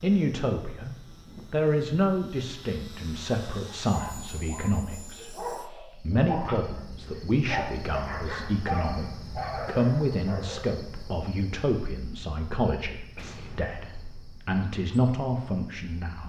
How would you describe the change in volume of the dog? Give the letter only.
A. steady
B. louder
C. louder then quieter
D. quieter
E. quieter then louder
B.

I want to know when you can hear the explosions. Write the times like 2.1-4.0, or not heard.
13.2-14.2.